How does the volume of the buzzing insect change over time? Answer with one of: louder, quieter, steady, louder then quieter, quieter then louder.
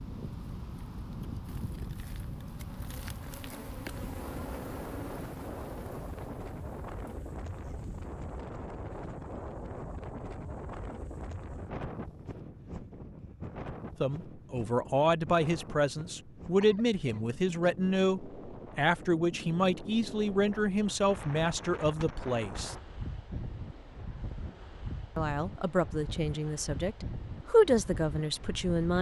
louder then quieter.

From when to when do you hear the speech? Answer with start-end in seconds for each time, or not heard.
14.0-22.8, 25.1-28.9.